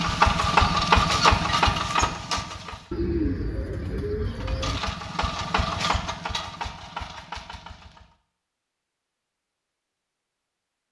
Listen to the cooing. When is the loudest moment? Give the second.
3 s.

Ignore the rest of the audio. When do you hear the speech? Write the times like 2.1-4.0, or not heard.
not heard.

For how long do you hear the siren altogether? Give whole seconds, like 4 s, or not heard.
not heard.